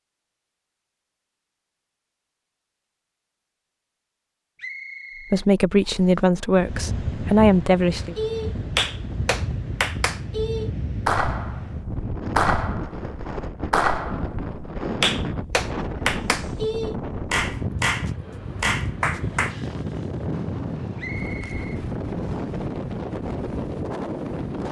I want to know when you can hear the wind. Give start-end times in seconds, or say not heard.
6.5-24.6.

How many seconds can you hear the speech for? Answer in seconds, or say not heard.
3 s.